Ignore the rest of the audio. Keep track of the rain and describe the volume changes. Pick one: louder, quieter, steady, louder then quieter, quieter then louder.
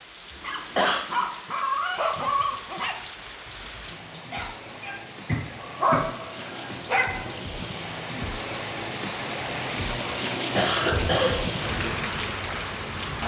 louder.